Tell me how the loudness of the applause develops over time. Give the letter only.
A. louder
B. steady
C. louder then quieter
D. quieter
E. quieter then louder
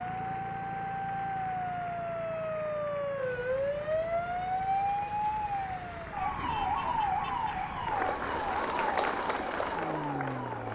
A.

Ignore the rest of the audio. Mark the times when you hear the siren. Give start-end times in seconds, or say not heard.
0.0-10.6.